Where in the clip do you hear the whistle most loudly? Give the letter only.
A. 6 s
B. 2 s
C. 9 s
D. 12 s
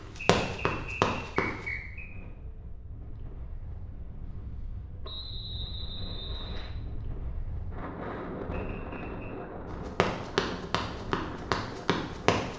B.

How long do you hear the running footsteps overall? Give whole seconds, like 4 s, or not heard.
4 s.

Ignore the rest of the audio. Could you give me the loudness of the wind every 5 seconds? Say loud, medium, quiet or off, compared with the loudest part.
medium, loud, loud.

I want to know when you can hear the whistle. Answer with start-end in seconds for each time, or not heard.
0.4-2.1, 5.0-6.7, 8.5-9.3.